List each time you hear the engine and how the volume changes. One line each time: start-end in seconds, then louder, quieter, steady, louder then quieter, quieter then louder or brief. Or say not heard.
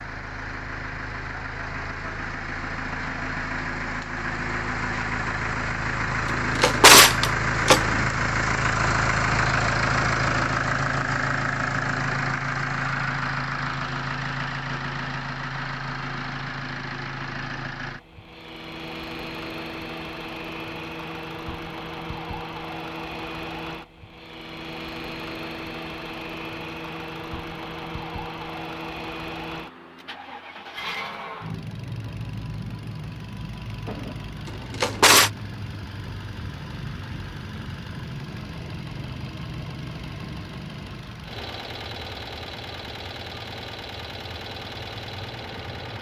0.0-45.9 quieter.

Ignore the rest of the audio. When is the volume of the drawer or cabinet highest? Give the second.
7 s.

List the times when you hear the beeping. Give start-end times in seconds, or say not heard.
not heard.